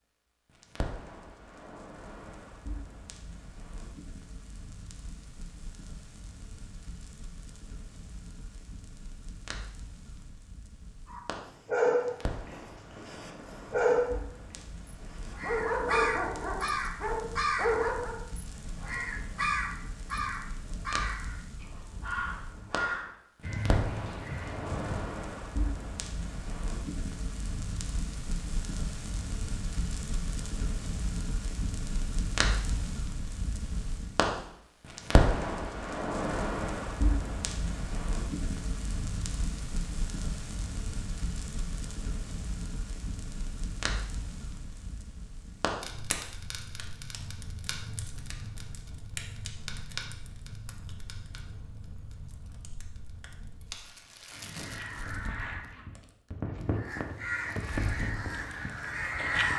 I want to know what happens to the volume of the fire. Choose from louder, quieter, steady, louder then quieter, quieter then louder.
louder then quieter.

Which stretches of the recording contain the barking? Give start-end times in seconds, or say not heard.
11.1-18.2.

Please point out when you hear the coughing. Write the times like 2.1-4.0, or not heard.
not heard.